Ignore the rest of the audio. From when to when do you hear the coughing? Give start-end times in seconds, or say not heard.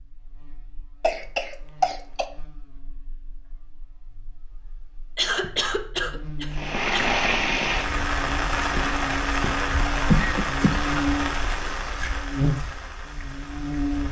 1.0-2.2, 5.2-7.2, 10.1-10.8.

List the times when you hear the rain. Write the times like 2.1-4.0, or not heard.
6.5-14.0.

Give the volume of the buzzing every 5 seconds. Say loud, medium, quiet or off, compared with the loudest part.
quiet, medium, loud.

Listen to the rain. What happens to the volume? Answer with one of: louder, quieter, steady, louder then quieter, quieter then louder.
quieter.